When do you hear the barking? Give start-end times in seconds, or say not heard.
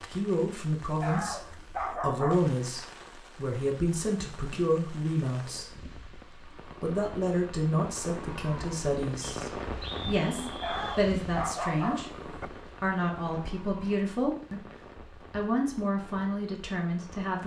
1.0-2.5, 10.6-12.5.